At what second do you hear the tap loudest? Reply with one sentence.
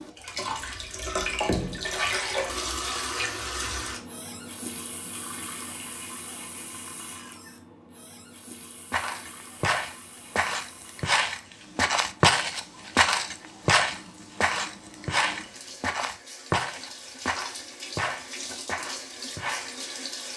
The volume of the tap peaks at 2 seconds.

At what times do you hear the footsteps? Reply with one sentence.
You can hear the footsteps from 8.9 to 19.8 s.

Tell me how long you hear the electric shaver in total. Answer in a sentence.
You can't hear the electric shaver here.